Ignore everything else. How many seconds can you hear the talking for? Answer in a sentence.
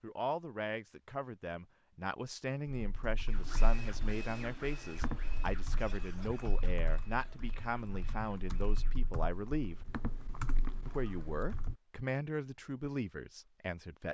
You can hear the talking for 13 seconds altogether.